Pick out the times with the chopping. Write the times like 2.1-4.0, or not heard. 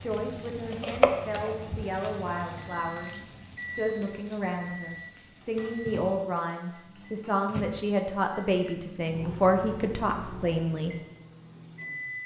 0.1-1.9.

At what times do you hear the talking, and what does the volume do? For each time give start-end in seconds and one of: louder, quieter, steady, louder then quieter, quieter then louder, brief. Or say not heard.
0.0-10.9 louder.